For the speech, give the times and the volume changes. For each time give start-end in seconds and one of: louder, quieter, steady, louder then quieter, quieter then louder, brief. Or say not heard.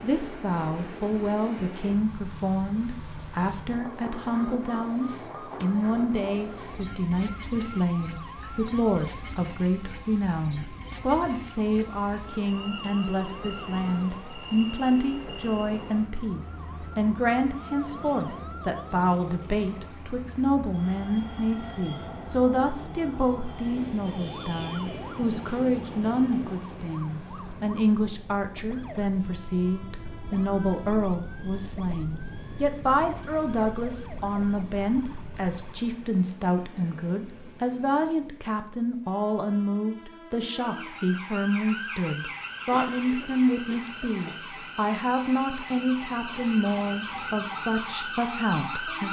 0.0-49.0 steady.